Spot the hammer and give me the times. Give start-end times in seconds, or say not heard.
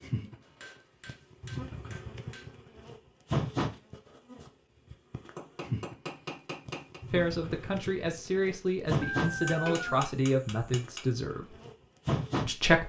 0.4-2.5, 5.3-7.0, 9.2-11.0.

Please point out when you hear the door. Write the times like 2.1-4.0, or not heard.
not heard.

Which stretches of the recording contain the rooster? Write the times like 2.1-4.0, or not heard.
9.0-10.0.